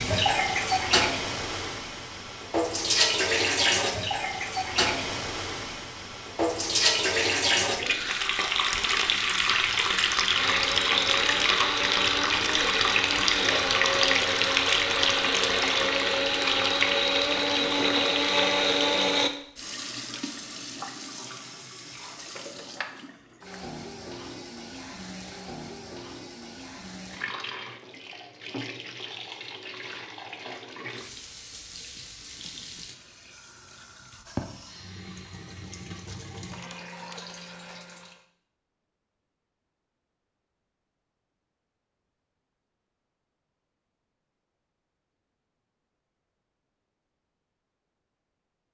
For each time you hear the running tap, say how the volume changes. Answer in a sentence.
You can hear the running tap from 0.0 to 38.2 s, getting quieter.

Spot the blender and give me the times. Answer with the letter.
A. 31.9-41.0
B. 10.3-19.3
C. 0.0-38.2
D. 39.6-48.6
B.